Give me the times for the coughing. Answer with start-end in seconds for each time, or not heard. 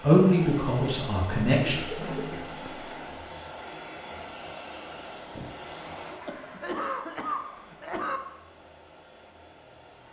1.6-2.9, 6.2-8.2.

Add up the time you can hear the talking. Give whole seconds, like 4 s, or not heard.
2 s.